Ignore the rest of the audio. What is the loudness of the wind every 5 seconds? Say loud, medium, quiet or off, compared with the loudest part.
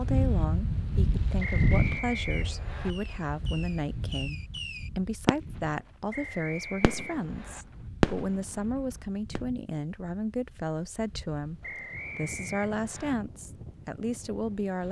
loud, quiet, quiet.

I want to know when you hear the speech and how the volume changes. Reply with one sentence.
The speech can be heard from 0.0 to 14.8 s, at a steady volume.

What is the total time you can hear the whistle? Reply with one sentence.
You can hear the whistle for 5 seconds altogether.